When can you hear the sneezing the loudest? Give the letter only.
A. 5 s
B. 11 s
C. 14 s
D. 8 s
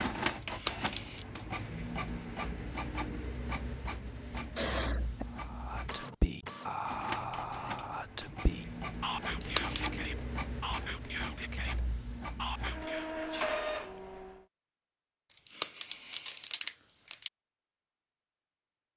A.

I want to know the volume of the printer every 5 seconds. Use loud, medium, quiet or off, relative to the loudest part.
loud, loud, loud, off.